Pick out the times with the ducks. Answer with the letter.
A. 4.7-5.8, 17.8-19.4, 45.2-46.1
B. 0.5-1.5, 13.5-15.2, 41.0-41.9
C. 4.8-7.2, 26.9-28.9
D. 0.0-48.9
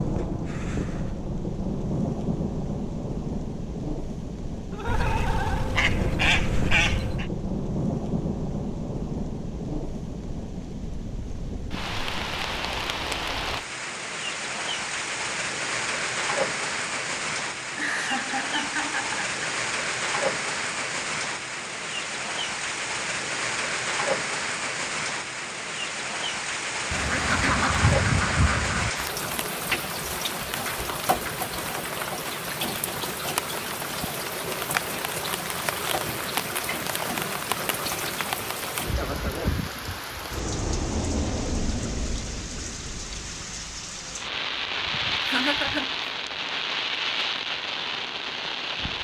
C.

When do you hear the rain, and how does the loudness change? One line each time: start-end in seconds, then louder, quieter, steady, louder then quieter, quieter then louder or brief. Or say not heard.
0.0-48.9 steady.